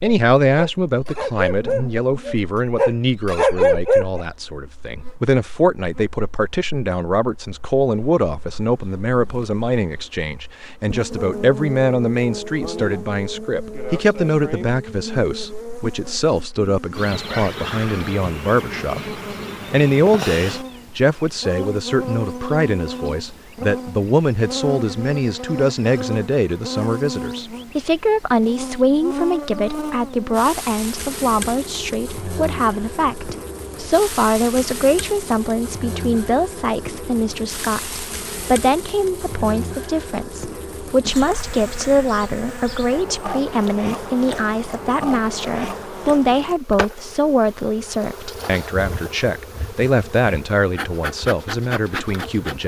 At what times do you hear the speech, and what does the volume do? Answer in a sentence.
You can hear the speech from 0.0 to 52.6 s, at a steady volume.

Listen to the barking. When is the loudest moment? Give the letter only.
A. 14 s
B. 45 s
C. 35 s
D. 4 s
D.